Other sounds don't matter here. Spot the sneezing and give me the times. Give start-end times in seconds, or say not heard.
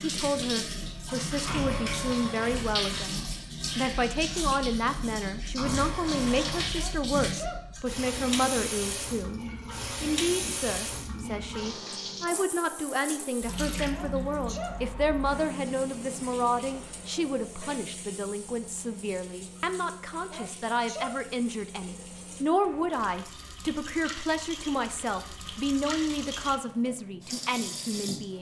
6.8-7.7, 13.9-14.8, 20.3-21.2.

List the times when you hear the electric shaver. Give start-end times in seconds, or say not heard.
not heard.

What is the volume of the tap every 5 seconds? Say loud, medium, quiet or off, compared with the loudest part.
loud, loud, loud, medium, medium, medium.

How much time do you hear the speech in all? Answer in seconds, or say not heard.
28 s.